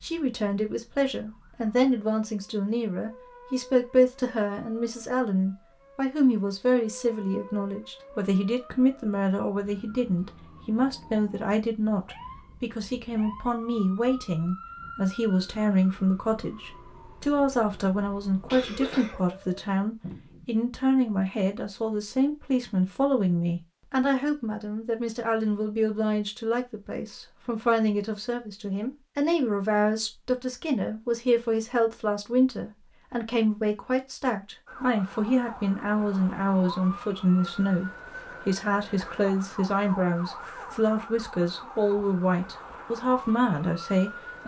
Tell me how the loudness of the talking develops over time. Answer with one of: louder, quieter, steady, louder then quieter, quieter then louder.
steady.